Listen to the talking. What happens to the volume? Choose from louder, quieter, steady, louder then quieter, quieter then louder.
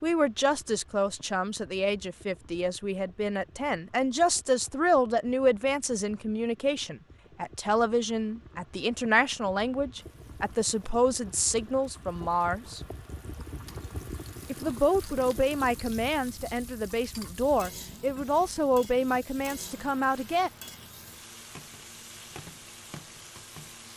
steady.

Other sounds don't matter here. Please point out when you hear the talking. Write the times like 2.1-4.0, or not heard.
0.0-12.8, 14.5-20.5.